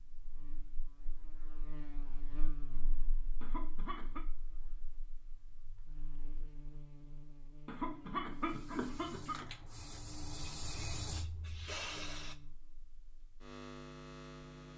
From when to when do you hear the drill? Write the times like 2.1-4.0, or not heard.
not heard.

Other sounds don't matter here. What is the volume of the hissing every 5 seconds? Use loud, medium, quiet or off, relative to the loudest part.
off, medium, loud.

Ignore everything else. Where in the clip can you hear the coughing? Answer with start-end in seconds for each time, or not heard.
3.4-4.2, 7.7-9.4.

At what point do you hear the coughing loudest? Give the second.
8 s.